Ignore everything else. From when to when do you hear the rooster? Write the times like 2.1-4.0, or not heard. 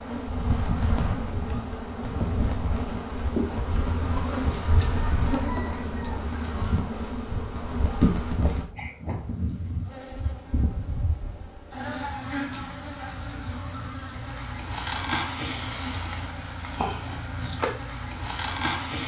5.0-6.2.